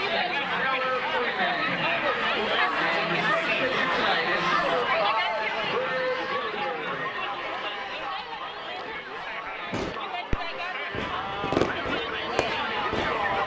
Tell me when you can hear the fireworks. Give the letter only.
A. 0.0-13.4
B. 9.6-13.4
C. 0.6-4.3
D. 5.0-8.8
B.